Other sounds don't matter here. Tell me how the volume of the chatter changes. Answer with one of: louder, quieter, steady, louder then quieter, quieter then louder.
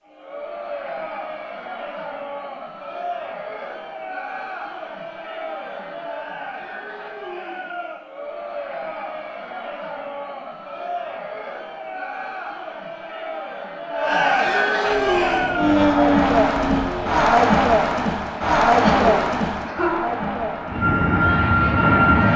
louder.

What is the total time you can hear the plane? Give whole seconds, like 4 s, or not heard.
4 s.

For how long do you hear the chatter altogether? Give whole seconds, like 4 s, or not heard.
22 s.